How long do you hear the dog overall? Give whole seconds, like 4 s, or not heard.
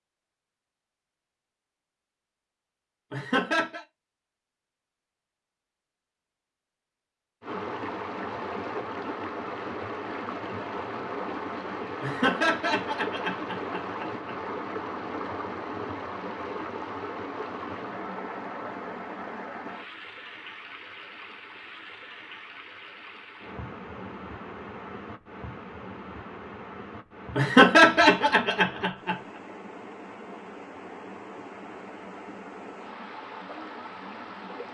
not heard.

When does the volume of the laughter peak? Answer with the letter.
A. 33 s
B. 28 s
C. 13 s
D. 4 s
B.